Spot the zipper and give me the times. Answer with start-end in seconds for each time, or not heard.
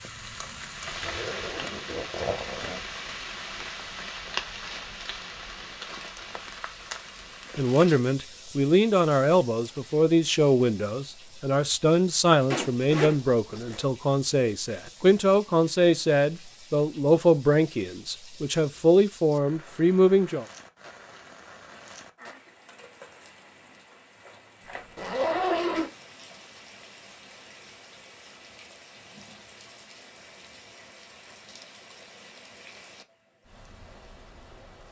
1.0-2.8, 12.5-13.8, 24.6-25.9.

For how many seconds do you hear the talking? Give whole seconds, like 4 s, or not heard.
13 s.